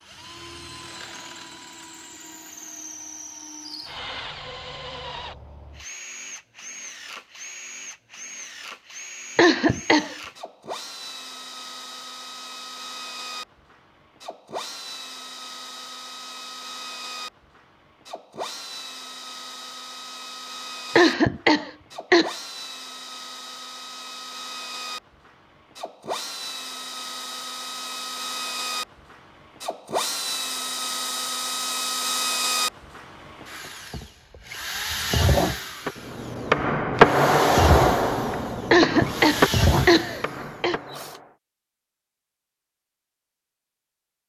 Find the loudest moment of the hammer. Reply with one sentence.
The loudest moment of the hammer is at 37 seconds.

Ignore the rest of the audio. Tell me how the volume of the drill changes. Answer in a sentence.
The loudness of the drill goes up.